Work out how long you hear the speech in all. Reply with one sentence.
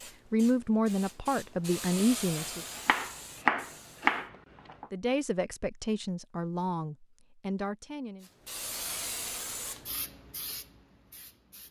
You can hear the speech for 6 seconds altogether.